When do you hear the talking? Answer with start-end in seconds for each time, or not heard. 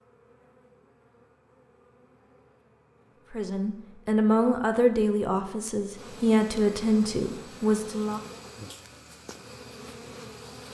3.3-8.2.